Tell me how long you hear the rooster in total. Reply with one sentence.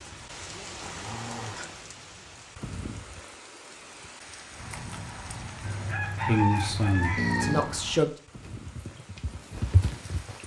You can hear the rooster for 2 seconds altogether.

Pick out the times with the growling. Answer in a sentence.
You can hear the growling from 0.7 to 1.9 s and from 7.2 to 7.8 s.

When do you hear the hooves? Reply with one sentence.
The hooves can be heard from 4.5 to 10.4 s.